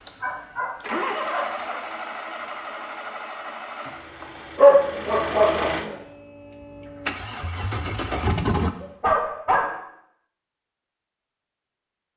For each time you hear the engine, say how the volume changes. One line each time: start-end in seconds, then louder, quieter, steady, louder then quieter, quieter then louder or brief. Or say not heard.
0.0-8.7 quieter then louder.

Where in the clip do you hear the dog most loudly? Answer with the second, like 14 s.
5 s.